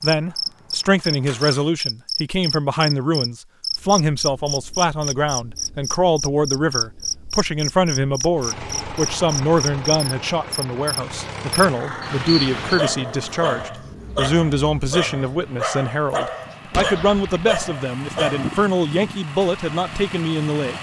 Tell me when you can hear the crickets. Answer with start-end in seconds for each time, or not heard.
0.0-12.8.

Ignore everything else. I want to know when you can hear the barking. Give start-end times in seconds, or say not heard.
12.6-18.5.